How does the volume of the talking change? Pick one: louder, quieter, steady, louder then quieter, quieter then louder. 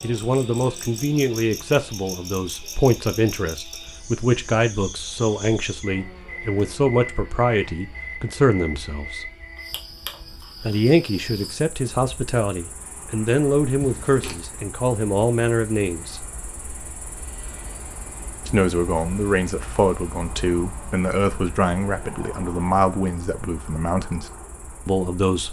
steady.